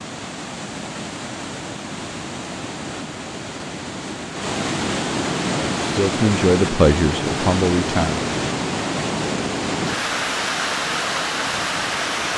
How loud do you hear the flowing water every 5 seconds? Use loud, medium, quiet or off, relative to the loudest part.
medium, loud, loud.